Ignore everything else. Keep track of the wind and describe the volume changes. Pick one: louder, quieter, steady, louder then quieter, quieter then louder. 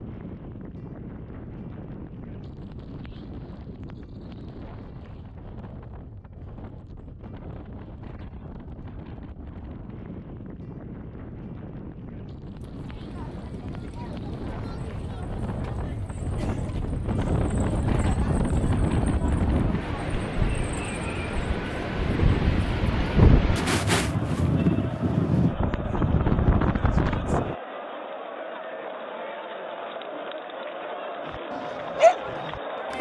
louder.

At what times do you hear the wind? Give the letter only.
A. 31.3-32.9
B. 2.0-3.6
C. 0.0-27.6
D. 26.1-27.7
C.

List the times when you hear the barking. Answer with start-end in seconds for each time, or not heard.
31.3-32.9.